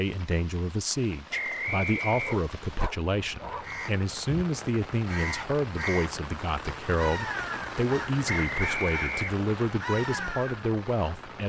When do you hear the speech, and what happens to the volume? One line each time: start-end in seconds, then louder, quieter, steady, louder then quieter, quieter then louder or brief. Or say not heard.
0.0-11.4 steady.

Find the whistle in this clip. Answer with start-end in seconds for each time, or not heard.
1.3-2.4, 8.3-9.5.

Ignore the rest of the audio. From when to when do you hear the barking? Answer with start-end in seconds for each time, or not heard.
2.1-3.9.